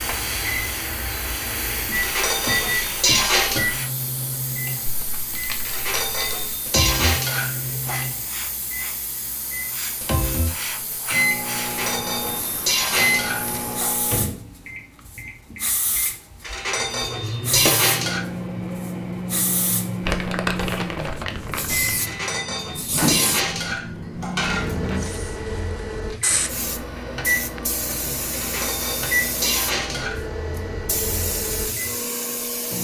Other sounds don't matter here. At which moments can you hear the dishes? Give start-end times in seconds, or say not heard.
1.9-3.7, 5.7-8.0, 11.6-14.0, 16.4-18.2, 21.9-24.8, 28.3-30.2.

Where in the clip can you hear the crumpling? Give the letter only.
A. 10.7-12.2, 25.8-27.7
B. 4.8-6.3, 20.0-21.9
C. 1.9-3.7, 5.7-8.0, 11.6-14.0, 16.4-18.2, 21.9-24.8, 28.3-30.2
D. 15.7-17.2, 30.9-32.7
B.